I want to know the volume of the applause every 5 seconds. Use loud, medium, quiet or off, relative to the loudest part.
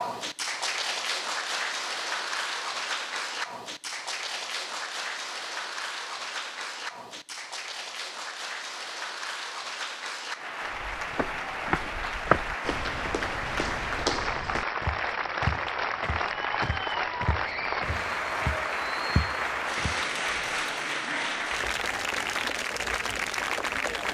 loud, medium, loud, loud, loud.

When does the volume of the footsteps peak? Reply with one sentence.
The loudest moment of the footsteps is at 12 seconds.